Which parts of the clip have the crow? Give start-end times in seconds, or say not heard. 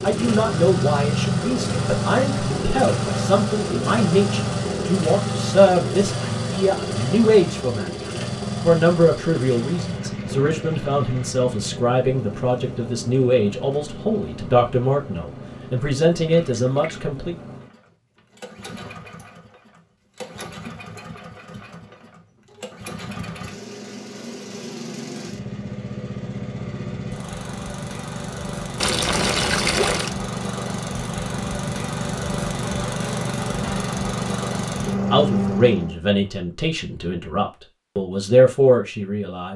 not heard.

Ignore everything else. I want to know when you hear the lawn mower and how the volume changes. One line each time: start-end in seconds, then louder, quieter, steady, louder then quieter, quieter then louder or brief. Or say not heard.
0.0-36.0 quieter then louder.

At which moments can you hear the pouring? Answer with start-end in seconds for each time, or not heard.
9.6-11.3, 16.2-17.1, 28.8-30.1.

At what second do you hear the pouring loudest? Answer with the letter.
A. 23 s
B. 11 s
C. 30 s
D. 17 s
C.